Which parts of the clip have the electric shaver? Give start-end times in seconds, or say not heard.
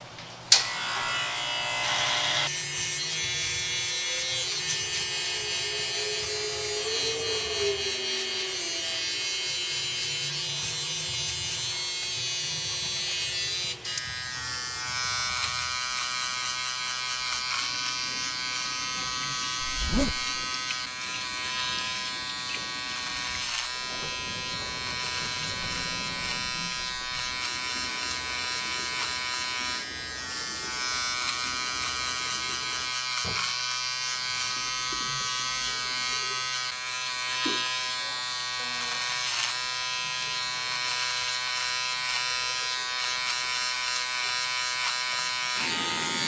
0.0-46.2.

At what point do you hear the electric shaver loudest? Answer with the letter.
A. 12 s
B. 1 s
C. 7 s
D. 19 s
B.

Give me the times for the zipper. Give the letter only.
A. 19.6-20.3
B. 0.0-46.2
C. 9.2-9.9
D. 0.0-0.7
A.